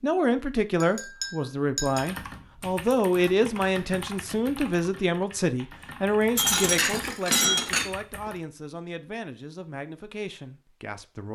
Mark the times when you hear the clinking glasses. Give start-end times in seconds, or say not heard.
0.8-2.1, 6.3-8.3.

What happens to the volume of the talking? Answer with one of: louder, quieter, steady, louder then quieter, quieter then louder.
quieter.